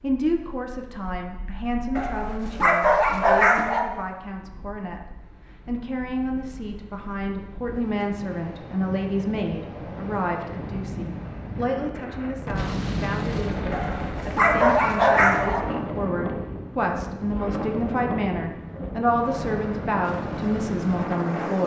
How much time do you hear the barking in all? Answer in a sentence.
The barking can be heard for 4 seconds in total.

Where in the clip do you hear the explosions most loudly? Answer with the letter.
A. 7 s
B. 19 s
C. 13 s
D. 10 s
C.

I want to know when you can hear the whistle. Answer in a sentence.
The whistle can't be heard in this clip.